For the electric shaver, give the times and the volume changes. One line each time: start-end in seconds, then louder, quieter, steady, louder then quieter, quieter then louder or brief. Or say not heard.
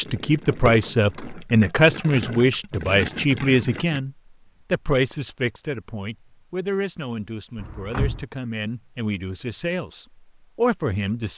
not heard.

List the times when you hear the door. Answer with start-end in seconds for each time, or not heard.
0.5-1.4, 7.5-8.2.